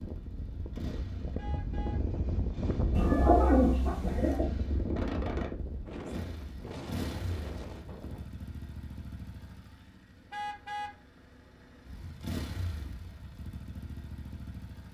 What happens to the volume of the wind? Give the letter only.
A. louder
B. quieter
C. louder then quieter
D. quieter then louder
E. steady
C.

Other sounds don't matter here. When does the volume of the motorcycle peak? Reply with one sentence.
The loudest moment of the motorcycle is at 5 seconds.